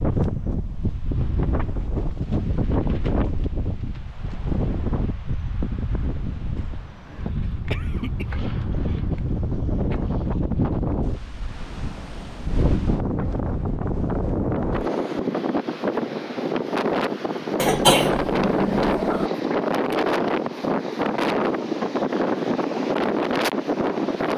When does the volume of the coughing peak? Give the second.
18 s.